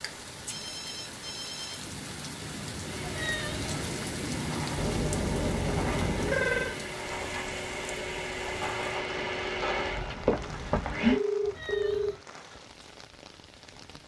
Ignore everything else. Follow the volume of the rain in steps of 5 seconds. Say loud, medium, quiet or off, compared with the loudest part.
loud, loud, medium.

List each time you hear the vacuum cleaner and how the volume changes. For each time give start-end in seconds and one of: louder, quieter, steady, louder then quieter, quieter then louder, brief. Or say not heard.
2.8-11.2 louder.